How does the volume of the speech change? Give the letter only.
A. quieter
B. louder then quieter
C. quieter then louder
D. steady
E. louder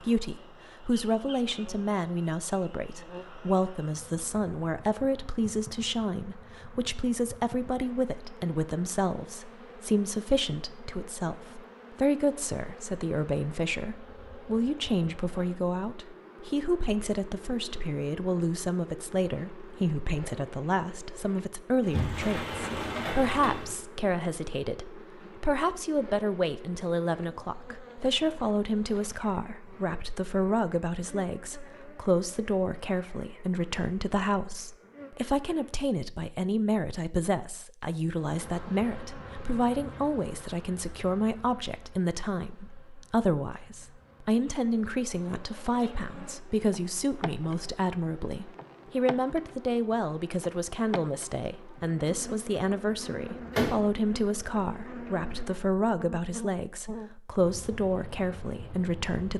D.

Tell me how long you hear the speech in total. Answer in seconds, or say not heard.
59 s.